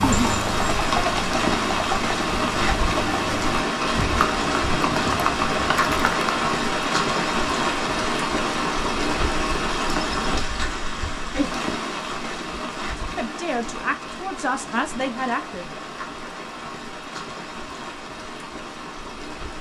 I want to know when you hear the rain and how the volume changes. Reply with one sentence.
You can hear the rain from 0.0 to 19.5 s, getting quieter.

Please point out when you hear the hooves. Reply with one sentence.
You can hear the hooves from 0.0 to 6.5 s.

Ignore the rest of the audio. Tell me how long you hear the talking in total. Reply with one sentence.
The talking can be heard for 3 seconds in total.